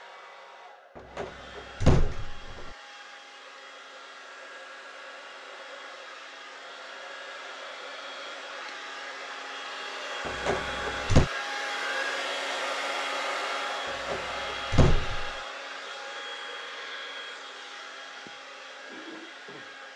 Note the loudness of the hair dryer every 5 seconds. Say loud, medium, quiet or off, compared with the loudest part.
quiet, medium, loud, medium.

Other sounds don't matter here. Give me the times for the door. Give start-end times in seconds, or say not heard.
0.9-2.8, 10.2-11.3, 14.1-15.3.